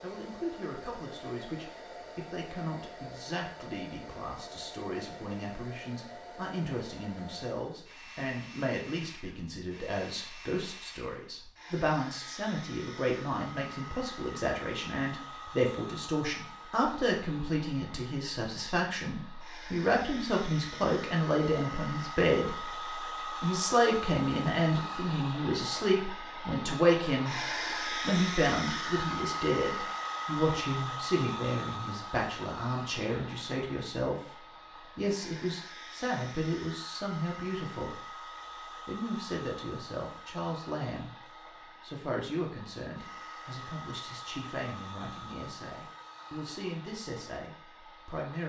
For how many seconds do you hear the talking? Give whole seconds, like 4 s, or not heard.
46 s.